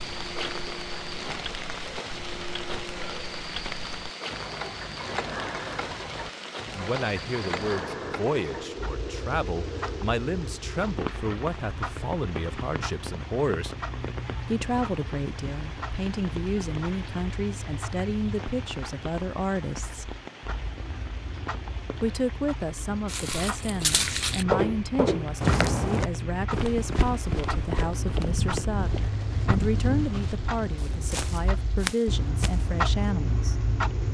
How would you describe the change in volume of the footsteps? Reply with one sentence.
The loudness of the footsteps goes down.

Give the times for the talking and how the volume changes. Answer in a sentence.
The talking can be heard from 6.7 to 13.8 s, at a steady volume; from 14.5 to 20.1 s, at a steady volume; and from 22.0 to 33.5 s, at a steady volume.